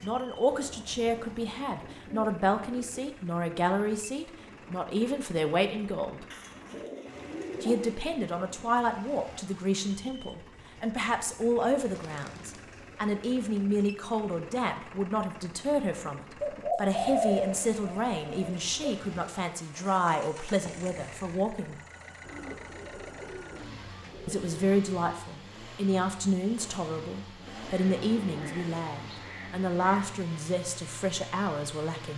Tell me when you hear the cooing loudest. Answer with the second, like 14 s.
17 s.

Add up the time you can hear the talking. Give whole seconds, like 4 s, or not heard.
28 s.